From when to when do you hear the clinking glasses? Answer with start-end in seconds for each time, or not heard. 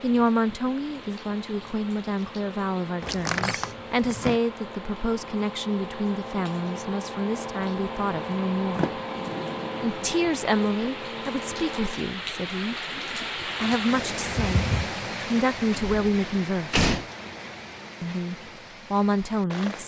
not heard.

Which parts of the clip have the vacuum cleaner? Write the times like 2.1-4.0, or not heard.
0.0-12.1.